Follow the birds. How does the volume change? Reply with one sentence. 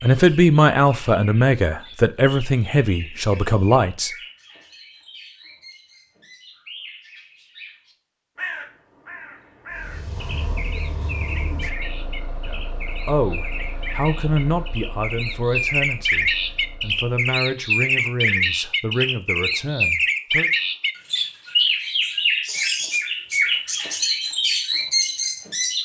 The loudness of the birds goes up.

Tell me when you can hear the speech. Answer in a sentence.
The speech can be heard from 0.0 to 4.1 s and from 12.4 to 20.5 s.